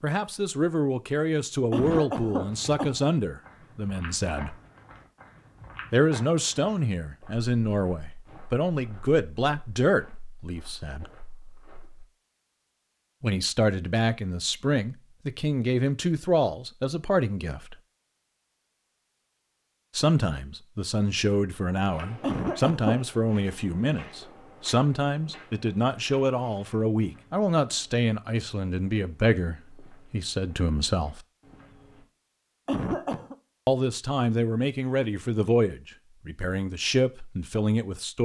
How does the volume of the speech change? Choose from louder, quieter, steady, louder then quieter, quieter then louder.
steady.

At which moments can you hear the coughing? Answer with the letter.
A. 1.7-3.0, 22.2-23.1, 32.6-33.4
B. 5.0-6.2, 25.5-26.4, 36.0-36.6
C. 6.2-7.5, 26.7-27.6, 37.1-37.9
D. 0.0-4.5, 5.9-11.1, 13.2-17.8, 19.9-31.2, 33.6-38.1
A.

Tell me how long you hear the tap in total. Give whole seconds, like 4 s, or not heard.
not heard.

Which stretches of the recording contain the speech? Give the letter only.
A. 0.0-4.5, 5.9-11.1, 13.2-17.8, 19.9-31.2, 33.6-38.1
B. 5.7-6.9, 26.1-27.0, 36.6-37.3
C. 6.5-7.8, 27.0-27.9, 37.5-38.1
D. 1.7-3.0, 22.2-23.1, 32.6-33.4
A.